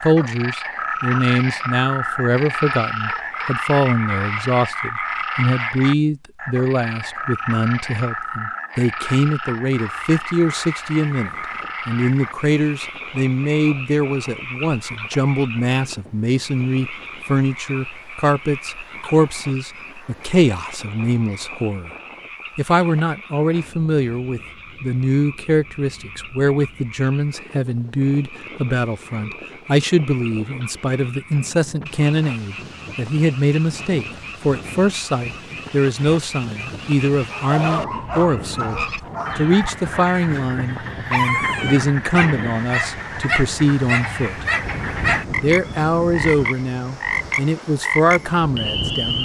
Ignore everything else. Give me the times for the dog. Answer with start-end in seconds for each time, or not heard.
37.3-45.2.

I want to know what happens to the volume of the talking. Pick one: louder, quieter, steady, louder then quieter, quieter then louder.
steady.